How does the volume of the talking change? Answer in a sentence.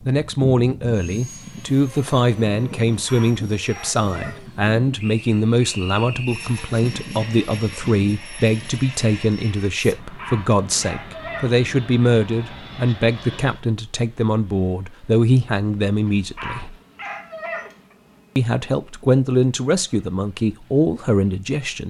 The volume of the talking stays about the same.